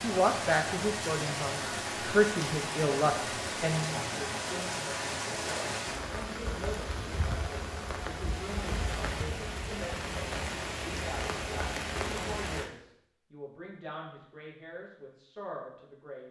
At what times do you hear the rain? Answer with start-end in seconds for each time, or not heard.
0.0-12.7.